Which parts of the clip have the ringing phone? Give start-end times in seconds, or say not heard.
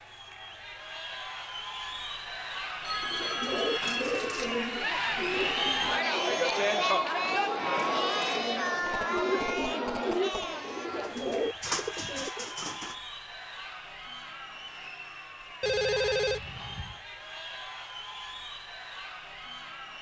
2.8-4.0, 8.8-10.4, 15.6-16.9.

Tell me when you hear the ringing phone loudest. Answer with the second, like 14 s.
16 s.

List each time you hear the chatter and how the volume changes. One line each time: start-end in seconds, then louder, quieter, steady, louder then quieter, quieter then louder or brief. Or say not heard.
0.0-19.9 louder then quieter.